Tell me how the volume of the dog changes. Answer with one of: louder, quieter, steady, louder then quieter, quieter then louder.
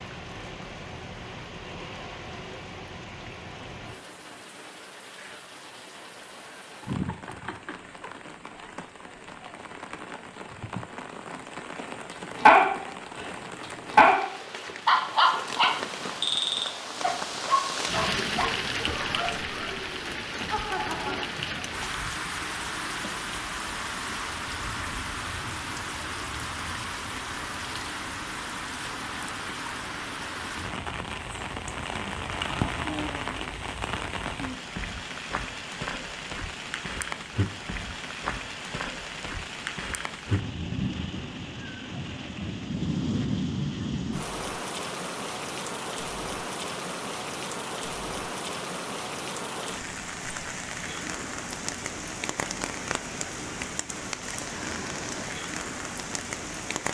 quieter.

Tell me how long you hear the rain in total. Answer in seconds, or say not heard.
57 s.